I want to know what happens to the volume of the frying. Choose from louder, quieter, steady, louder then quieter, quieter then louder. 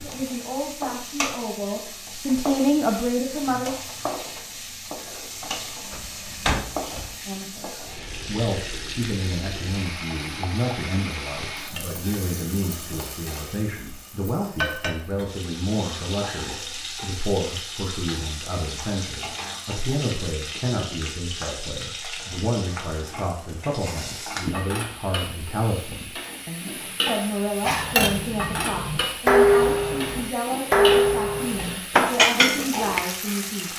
steady.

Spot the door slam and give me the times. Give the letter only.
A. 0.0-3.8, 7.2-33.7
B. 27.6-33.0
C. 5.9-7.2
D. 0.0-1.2
C.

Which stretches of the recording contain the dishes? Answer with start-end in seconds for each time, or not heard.
27.6-33.0.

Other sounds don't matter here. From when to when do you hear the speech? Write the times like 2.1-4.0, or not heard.
0.0-3.8, 7.2-33.7.